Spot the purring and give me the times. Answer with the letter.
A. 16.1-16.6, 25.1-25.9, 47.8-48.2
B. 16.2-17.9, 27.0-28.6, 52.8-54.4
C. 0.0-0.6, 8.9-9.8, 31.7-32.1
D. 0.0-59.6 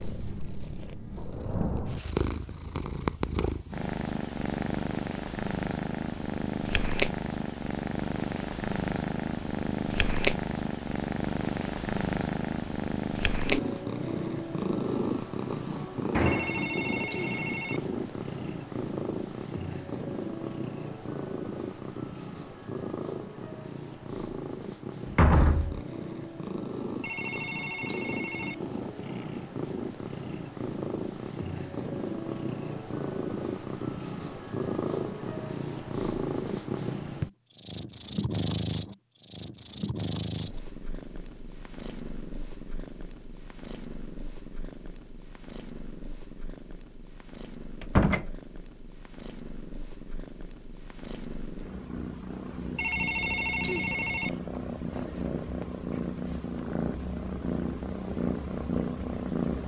D.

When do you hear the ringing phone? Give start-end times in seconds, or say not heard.
16.2-17.9, 27.0-28.6, 52.8-54.4.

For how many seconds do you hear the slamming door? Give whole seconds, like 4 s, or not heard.
2 s.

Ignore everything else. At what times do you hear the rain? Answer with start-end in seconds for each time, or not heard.
not heard.